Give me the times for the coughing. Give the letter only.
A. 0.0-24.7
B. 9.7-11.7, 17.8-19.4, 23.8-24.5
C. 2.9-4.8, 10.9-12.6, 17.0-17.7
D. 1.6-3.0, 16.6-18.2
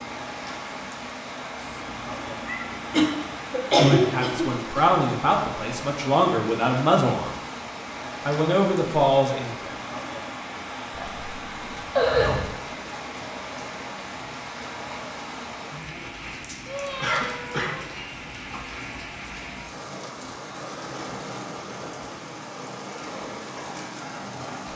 C.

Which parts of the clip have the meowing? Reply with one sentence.
You can hear the meowing from 1.6 to 3.0 s and from 16.6 to 18.2 s.